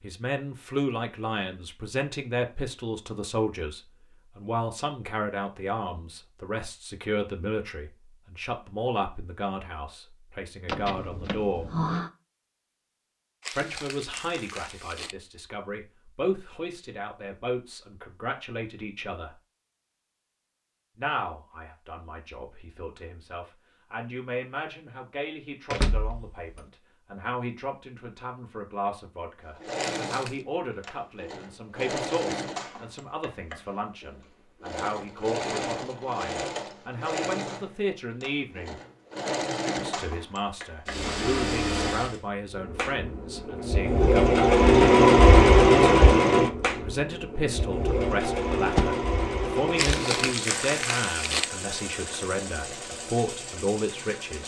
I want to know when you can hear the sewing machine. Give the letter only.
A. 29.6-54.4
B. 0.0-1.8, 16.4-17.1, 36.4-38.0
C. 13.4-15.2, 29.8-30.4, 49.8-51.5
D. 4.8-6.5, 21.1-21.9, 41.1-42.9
A.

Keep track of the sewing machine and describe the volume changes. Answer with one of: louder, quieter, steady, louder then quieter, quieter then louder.
louder then quieter.